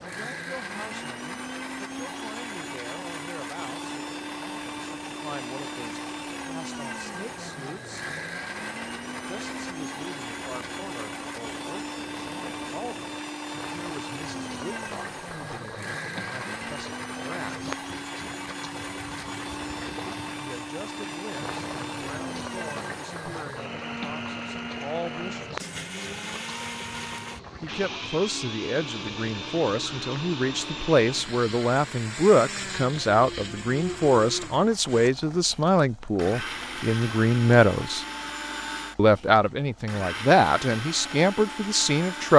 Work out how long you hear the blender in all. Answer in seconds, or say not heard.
42 s.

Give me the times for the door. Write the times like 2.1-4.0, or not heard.
not heard.